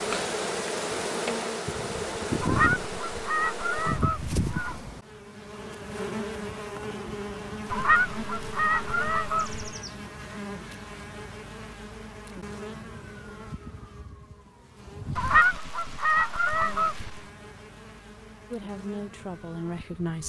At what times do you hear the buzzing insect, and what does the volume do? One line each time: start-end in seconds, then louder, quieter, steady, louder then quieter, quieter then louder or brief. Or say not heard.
0.0-20.2 quieter.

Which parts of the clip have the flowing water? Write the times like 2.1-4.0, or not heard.
not heard.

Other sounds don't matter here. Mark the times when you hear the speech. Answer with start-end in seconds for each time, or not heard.
18.5-20.2.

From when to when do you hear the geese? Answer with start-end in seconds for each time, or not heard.
2.4-4.8, 7.7-9.8, 15.2-17.2.